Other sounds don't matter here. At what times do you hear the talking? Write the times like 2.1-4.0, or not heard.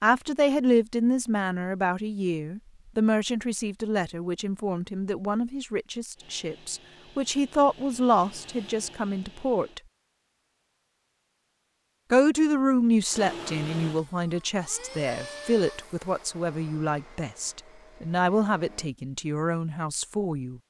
0.0-9.8, 12.1-20.6.